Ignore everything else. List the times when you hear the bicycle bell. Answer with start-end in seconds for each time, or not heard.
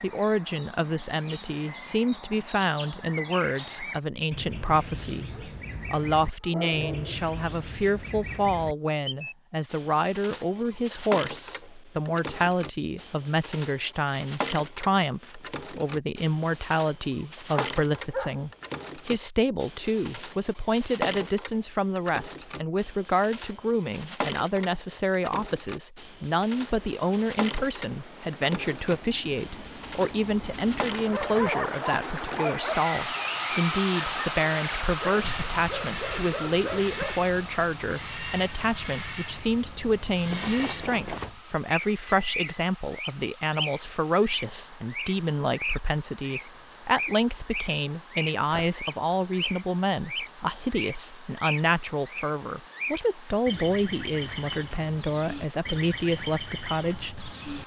40.2-42.5.